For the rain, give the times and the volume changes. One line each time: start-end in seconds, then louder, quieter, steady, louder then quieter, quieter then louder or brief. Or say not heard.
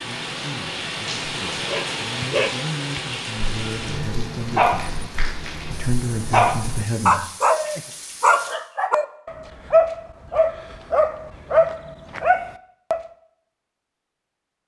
0.0-8.6 quieter.